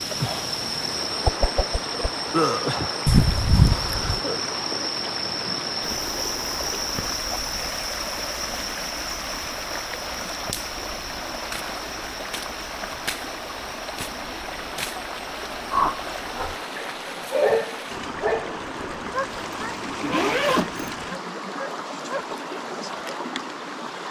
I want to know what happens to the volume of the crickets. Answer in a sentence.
The loudness of the crickets goes down.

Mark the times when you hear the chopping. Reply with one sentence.
You can't hear the chopping here.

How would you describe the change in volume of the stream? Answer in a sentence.
The volume of the stream stays about the same.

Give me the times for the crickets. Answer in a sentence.
You can hear the crickets from 0.0 to 16.6 s.